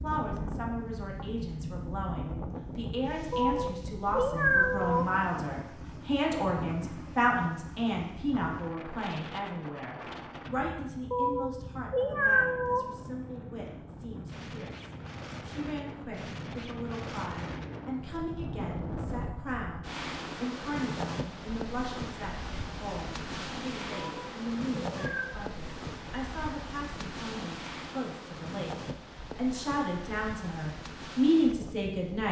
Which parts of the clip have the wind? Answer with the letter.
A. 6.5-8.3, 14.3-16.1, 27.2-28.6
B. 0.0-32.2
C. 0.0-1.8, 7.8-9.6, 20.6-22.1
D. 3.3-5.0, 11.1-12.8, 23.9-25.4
B.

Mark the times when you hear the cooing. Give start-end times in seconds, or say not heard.
not heard.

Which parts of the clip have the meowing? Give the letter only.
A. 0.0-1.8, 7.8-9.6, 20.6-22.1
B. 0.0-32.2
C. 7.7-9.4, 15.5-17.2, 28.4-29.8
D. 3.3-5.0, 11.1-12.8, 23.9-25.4
D.